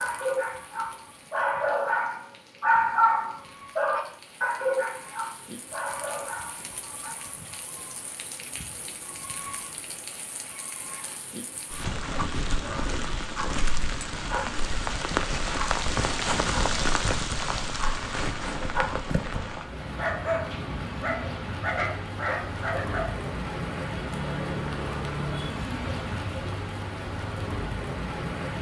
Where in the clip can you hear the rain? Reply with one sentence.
The rain can be heard from 0.0 to 28.5 s.